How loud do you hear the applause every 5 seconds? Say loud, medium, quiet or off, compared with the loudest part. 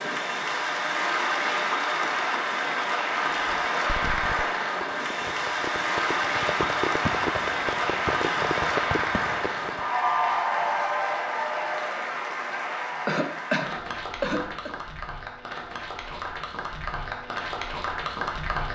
loud, loud, loud, medium.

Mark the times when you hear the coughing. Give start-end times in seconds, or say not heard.
13.1-14.7.